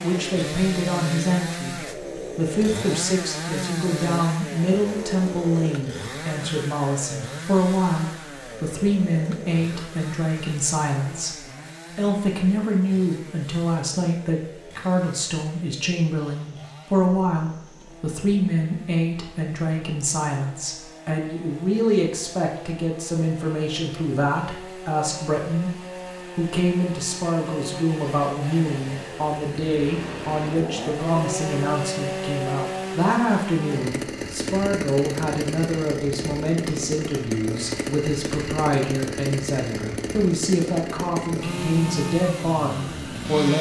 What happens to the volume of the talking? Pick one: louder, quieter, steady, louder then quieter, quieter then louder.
steady.